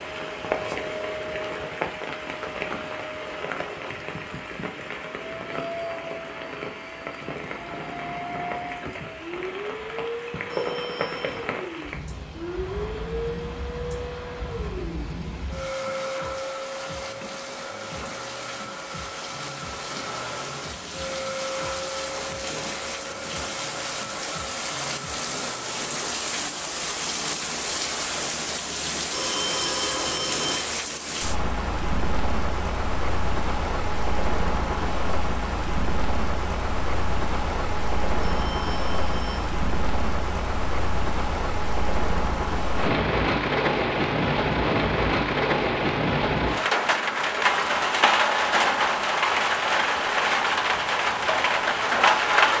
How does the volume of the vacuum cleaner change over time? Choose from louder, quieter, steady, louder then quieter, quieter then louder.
steady.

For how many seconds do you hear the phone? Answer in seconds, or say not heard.
4 s.